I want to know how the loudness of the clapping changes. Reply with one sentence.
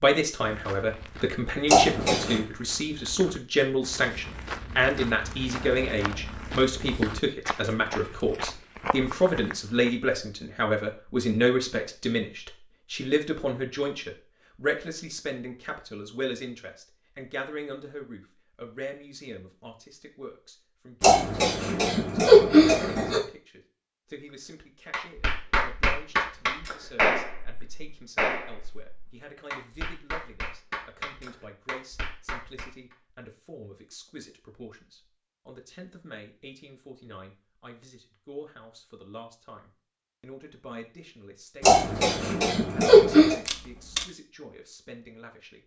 The loudness of the clapping goes down.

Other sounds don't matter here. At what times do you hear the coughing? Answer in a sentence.
You can hear the coughing from 1.6 to 2.4 s, from 21.0 to 23.2 s and from 41.6 to 43.4 s.